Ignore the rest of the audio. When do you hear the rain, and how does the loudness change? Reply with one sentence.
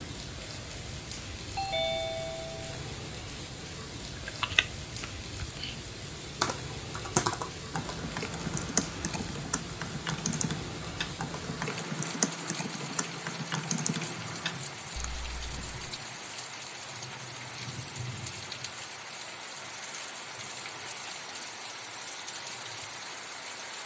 You can hear the rain from 0.0 to 23.8 s, at a steady volume.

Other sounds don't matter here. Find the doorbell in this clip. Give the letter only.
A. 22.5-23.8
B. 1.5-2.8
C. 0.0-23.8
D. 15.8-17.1
B.